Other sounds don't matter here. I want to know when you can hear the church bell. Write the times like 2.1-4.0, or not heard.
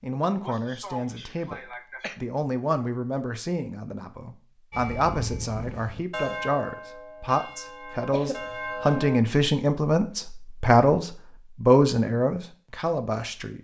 4.7-9.2.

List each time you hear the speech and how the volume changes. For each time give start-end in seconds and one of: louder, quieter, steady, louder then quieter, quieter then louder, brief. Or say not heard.
0.0-13.6 louder.